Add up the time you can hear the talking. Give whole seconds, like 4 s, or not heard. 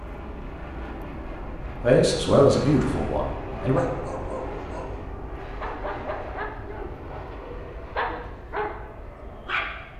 2 s.